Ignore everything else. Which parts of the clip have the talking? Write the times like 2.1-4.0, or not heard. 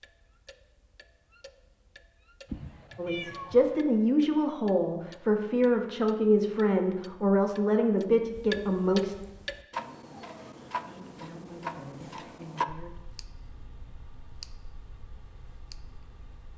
3.0-9.2, 10.8-13.0.